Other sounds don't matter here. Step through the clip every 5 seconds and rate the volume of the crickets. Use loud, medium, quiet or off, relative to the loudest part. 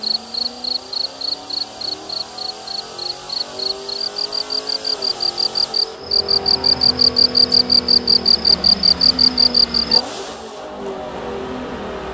medium, loud, off.